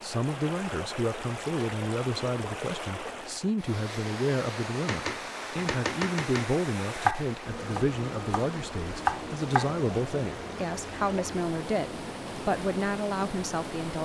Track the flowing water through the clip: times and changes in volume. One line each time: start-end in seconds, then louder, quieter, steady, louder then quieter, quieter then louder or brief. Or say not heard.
0.0-14.0 steady.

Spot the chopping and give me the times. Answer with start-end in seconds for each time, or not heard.
4.8-9.8.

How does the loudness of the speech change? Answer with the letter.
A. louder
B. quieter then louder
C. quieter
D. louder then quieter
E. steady
E.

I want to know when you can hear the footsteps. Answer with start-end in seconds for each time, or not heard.
not heard.